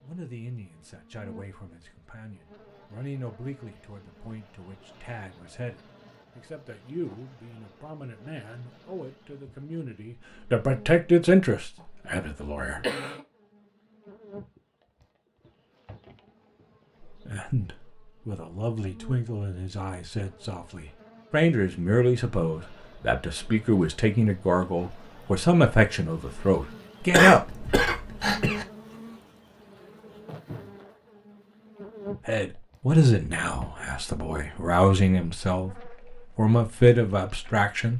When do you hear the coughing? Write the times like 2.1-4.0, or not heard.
11.8-13.2, 27.1-28.6.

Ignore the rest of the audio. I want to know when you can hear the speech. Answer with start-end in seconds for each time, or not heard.
0.0-12.8, 17.2-27.4, 32.2-37.9.